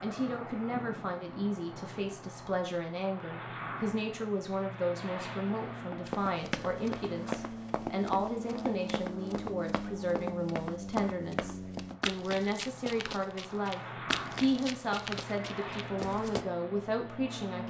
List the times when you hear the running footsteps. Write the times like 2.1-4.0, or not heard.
6.0-16.4.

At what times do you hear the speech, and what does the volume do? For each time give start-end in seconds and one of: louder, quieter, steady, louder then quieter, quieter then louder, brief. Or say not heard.
0.0-17.6 steady.